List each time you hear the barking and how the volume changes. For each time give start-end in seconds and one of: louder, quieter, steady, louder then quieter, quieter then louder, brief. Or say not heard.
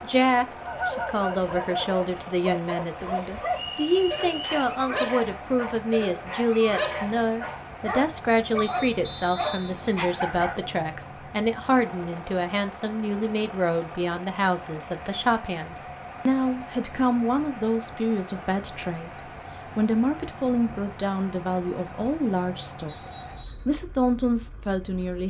0.6-10.7 steady.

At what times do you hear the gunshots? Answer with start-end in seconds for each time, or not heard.
not heard.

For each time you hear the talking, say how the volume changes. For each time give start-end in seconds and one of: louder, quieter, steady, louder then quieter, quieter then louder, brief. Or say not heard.
0.0-25.2 steady.